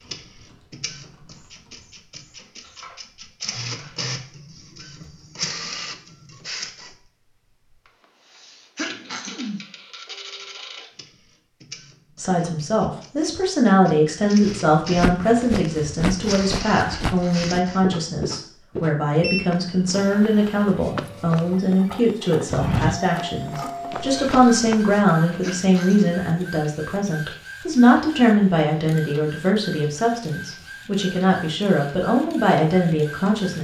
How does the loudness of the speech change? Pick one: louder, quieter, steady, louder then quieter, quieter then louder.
steady.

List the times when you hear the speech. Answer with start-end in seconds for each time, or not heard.
12.2-33.5.